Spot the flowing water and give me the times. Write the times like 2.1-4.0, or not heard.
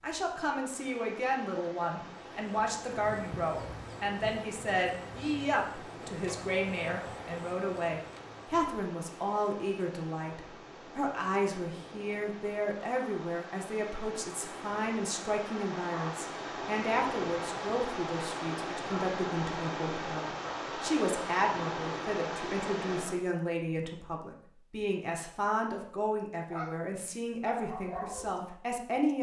0.0-23.2.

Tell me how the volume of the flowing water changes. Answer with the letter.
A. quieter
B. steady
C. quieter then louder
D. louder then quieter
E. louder
E.